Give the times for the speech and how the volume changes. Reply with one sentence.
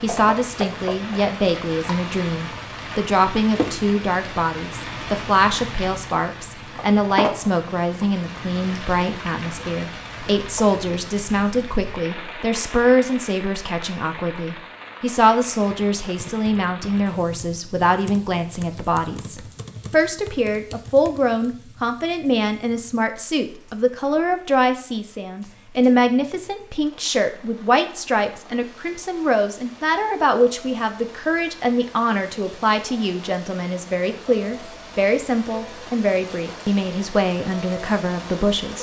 The speech can be heard from 0.0 to 38.7 s, at a steady volume.